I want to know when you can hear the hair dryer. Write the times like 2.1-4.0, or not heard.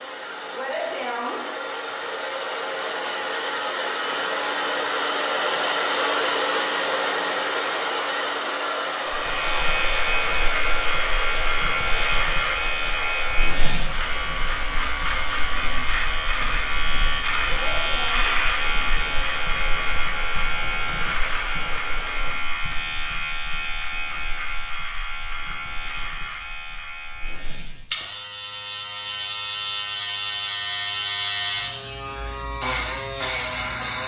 0.0-22.4.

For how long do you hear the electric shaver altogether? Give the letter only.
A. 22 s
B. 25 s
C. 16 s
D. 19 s
B.